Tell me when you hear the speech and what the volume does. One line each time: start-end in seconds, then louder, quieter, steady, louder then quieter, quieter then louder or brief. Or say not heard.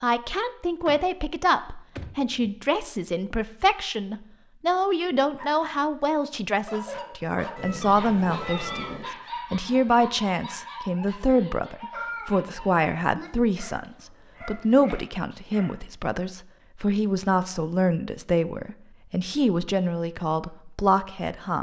0.0-21.5 steady.